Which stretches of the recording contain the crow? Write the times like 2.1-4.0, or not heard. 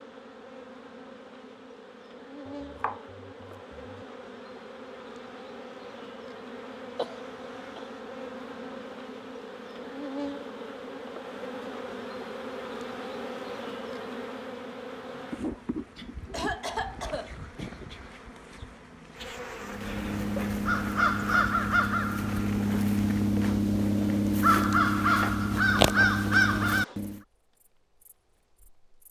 19.6-27.2.